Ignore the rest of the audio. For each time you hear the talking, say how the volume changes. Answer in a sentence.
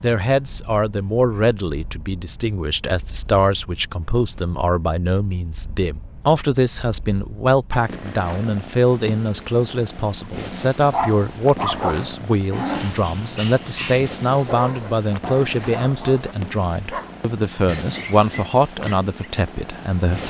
The talking can be heard from 0.0 to 20.2 s, at a steady volume.